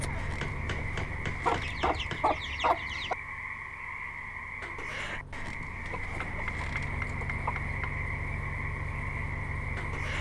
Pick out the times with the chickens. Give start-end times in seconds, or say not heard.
1.4-3.1, 6.0-7.5.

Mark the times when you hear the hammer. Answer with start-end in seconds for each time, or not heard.
0.3-2.4, 6.2-8.0.